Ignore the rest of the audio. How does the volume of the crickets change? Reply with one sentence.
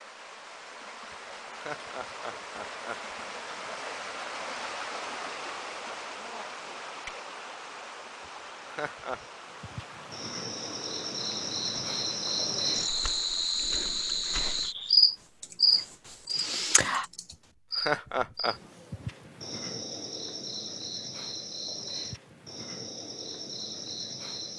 The volume of the crickets goes up, then down.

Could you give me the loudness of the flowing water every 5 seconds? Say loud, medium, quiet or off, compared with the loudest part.
loud, loud, medium, off, off.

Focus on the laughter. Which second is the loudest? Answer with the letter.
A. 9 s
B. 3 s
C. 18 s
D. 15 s
C.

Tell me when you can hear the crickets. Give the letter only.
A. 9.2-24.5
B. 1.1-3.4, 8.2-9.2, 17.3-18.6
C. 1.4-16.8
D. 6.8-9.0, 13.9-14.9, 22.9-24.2
A.